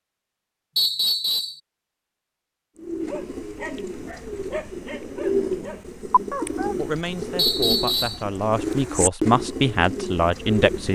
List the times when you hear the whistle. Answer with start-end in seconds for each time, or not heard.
0.8-1.6, 7.3-8.2.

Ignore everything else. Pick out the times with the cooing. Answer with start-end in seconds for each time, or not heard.
2.8-10.9.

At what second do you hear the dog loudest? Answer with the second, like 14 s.
6 s.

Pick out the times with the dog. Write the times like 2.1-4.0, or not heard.
3.0-6.8.